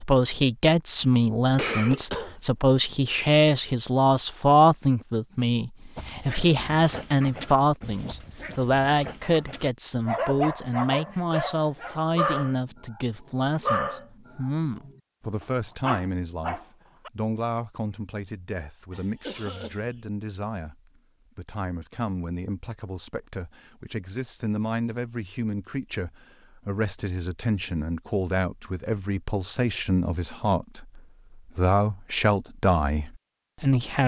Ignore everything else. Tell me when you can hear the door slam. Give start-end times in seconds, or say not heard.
not heard.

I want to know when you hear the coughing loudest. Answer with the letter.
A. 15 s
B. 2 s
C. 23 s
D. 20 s
B.